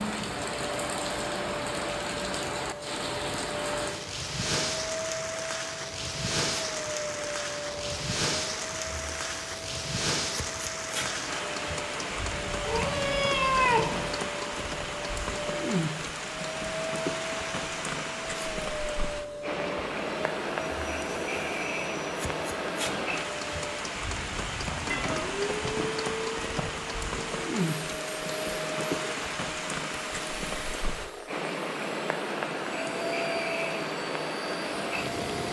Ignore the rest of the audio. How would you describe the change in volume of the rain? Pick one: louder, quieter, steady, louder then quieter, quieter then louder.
steady.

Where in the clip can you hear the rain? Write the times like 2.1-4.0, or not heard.
0.0-35.4.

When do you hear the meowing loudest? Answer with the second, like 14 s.
14 s.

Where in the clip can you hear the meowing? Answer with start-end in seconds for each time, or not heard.
12.7-14.3, 24.9-26.7.